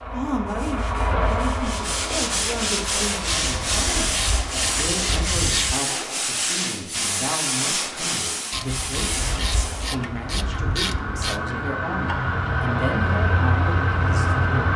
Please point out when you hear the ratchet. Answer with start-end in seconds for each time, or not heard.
3.2-5.8, 8.5-11.4.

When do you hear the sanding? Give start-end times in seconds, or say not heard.
0.5-9.9.